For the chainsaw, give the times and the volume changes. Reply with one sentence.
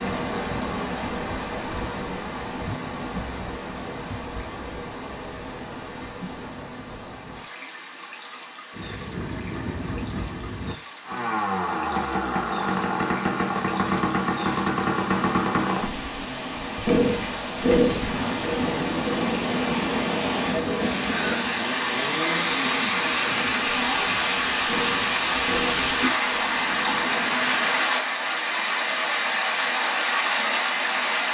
The chainsaw can be heard from 11.0 to 27.9 s, getting quieter.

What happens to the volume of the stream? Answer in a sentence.
The loudness of the stream goes down, then up.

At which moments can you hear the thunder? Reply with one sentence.
You can hear the thunder from 8.7 to 10.8 s and from 18.1 to 21.7 s.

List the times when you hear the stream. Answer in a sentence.
You can hear the stream from 0.0 to 31.2 s.